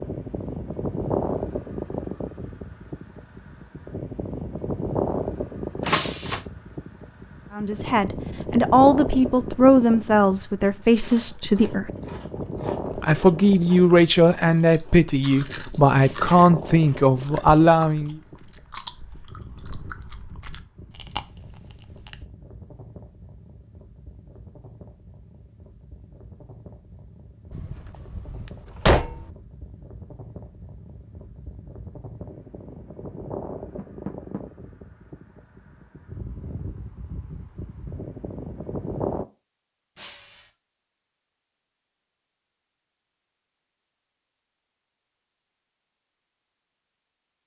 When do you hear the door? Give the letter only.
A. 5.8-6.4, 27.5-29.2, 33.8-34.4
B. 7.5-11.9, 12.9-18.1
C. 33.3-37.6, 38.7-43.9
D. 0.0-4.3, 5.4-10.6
A.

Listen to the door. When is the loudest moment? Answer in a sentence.
The loudest moment of the door is at 29 seconds.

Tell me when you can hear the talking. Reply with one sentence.
The talking can be heard from 7.5 to 11.9 s and from 12.9 to 18.1 s.